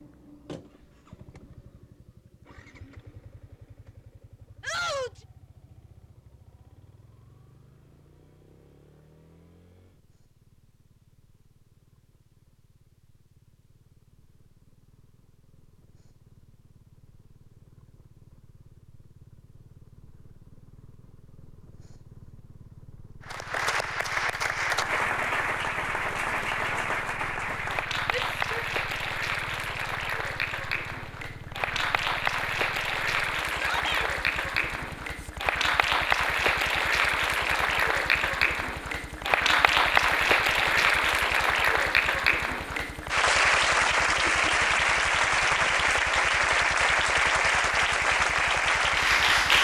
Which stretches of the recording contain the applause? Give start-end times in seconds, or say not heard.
23.2-49.5.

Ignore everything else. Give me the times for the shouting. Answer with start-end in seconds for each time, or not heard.
4.6-5.2, 28.1-28.6, 33.5-34.1.